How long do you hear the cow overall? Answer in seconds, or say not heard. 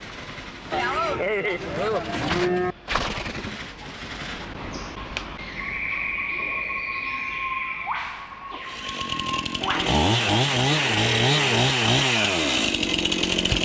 4 s.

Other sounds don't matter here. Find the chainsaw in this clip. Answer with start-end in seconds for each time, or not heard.
8.7-13.5.